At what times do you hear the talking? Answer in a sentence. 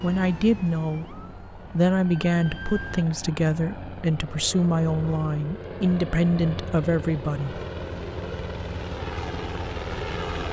You can hear the talking from 0.0 to 7.6 s.